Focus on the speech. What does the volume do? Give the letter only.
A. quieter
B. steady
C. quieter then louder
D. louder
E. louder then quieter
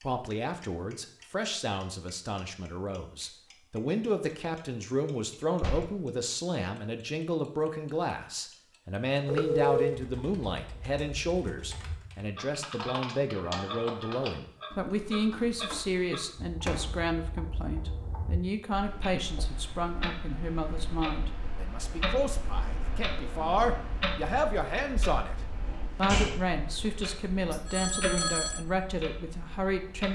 B.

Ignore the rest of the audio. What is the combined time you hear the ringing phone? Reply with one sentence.
The ringing phone can be heard for 2 seconds in total.